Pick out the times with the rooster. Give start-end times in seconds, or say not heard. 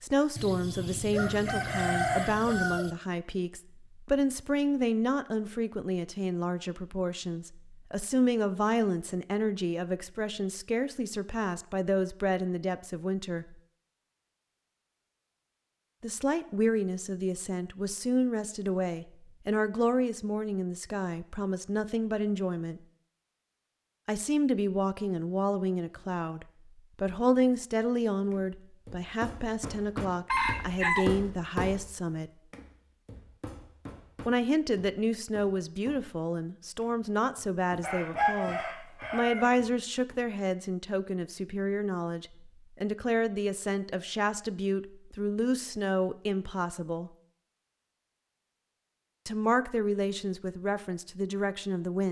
0.3-2.9, 30.2-31.1, 37.8-39.5.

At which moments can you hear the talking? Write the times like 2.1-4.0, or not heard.
0.0-13.6, 16.0-22.8, 24.1-32.3, 34.2-47.1, 49.2-52.0.